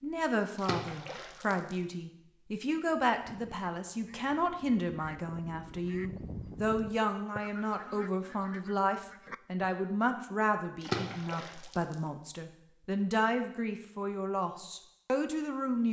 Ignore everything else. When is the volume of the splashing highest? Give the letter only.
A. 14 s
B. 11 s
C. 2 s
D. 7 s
B.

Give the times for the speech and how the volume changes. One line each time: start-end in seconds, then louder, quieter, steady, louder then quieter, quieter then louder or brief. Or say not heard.
0.0-15.8 steady.